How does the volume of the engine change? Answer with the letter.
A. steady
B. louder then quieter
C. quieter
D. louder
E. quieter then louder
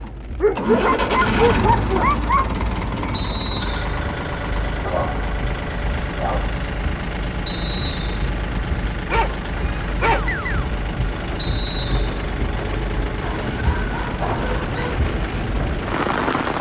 C.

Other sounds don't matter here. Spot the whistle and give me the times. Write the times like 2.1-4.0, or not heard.
3.1-4.0, 7.5-8.2, 11.3-12.2.